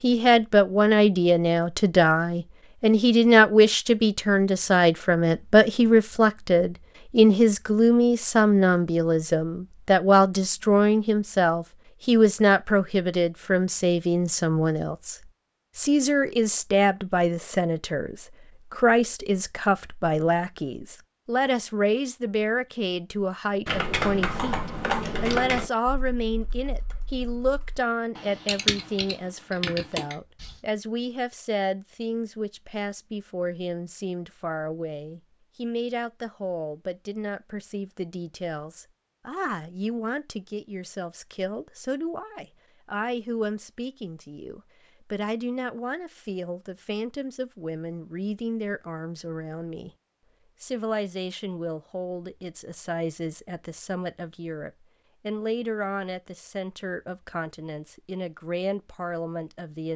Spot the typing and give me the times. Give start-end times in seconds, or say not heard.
23.6-30.6.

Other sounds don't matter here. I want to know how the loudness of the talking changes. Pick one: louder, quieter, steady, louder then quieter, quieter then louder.
quieter.